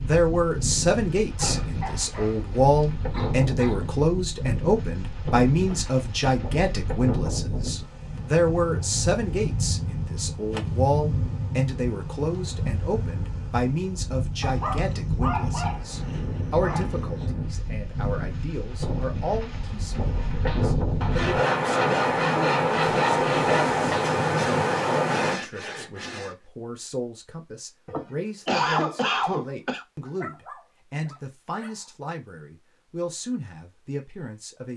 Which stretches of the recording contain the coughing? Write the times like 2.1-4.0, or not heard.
5.6-6.4, 27.9-29.9.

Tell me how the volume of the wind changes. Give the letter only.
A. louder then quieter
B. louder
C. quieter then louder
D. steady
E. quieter
B.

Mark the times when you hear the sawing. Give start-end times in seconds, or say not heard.
20.1-26.4.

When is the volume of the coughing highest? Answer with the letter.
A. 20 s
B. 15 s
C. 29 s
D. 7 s
C.